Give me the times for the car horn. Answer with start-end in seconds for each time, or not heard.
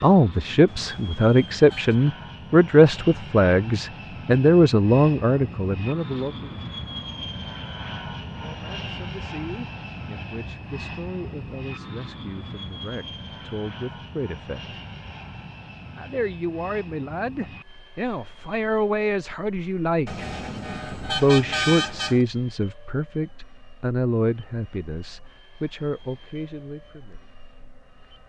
0.7-1.9, 20.1-22.2.